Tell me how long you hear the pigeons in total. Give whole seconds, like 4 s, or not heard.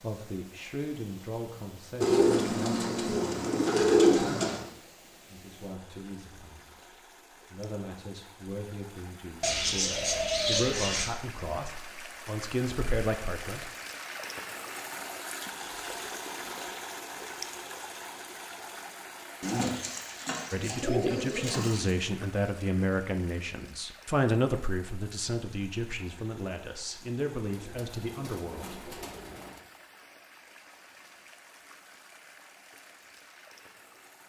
9 s.